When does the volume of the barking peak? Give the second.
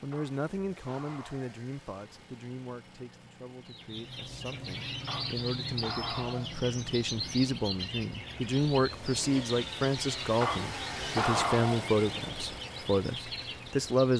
11 s.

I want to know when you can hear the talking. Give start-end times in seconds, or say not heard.
0.0-14.1.